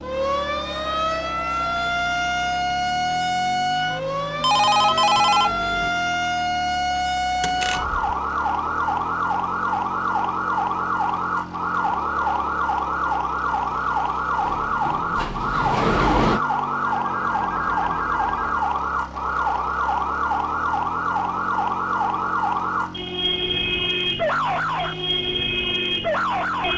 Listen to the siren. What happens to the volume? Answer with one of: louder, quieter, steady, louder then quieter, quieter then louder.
steady.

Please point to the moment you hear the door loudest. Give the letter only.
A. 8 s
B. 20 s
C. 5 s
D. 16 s
D.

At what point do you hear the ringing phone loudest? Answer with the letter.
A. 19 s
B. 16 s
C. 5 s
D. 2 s
C.